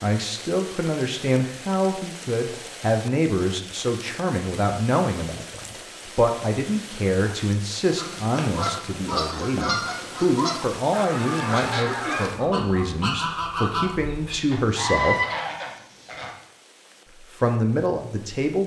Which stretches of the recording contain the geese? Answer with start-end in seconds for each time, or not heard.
8.0-16.3.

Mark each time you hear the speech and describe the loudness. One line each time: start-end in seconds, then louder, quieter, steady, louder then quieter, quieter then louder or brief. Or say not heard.
0.0-15.2 steady
17.2-18.6 brief.